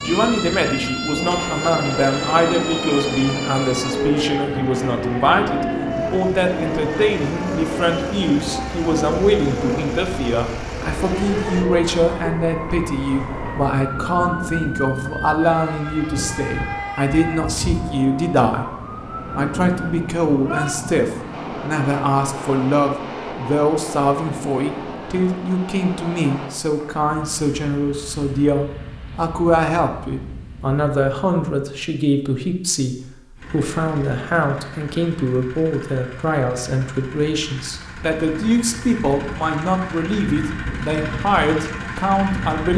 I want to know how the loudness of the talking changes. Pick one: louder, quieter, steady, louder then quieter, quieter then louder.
steady.